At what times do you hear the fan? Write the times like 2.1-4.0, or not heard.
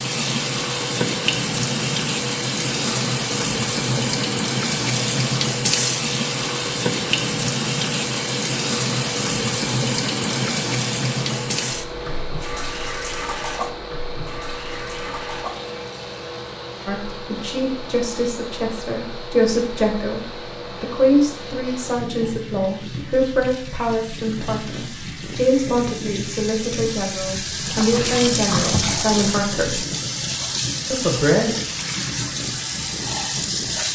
0.0-33.9.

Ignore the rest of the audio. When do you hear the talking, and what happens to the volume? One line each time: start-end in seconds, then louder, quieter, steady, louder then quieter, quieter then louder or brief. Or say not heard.
16.9-29.9 steady
30.9-31.6 brief.